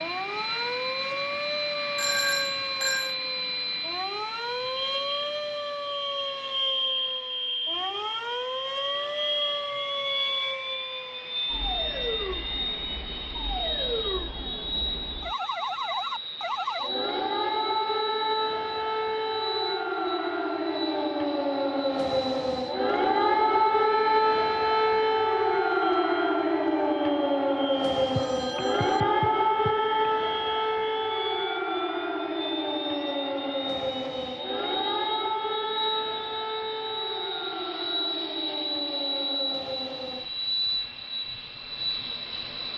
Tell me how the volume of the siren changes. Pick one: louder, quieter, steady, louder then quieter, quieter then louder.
louder then quieter.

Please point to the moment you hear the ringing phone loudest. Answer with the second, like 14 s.
2 s.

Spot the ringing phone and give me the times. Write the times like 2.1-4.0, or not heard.
1.9-3.1, 28.1-30.1.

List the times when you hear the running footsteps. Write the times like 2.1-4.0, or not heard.
not heard.